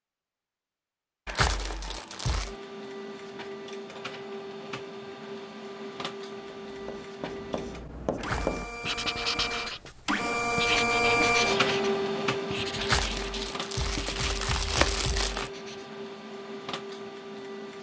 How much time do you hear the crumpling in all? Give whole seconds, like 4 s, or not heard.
5 s.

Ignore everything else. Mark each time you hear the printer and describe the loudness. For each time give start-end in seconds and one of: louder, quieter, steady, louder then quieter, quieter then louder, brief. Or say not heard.
2.4-17.7 louder then quieter.